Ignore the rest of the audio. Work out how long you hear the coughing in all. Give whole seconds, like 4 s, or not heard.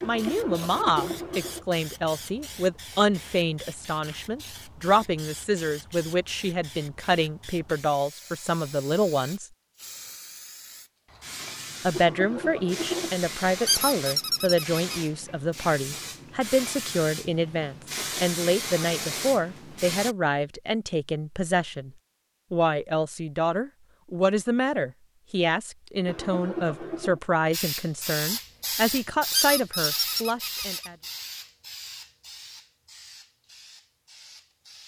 4 s.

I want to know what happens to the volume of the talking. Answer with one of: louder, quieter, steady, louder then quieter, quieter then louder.
steady.